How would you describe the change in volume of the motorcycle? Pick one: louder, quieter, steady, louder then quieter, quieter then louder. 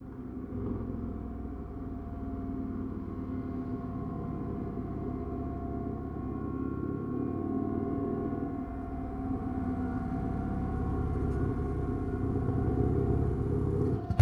louder.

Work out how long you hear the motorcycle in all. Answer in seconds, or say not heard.
14 s.